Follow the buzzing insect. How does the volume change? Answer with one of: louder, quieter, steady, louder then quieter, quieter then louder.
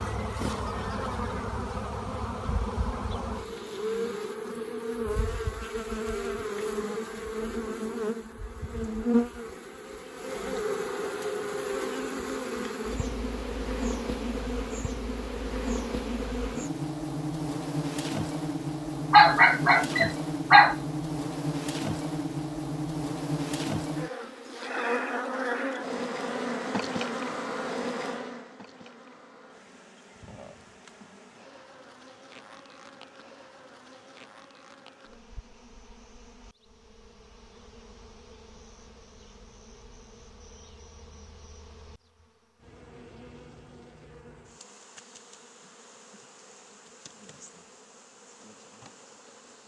quieter.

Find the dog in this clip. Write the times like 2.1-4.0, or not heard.
19.1-20.8.